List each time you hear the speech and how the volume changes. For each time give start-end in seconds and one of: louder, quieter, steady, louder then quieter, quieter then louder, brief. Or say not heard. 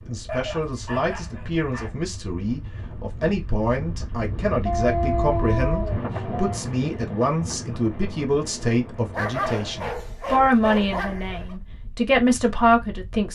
0.1-13.3 louder.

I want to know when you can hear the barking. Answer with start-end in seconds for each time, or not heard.
0.2-2.0, 4.7-6.5, 9.1-11.6.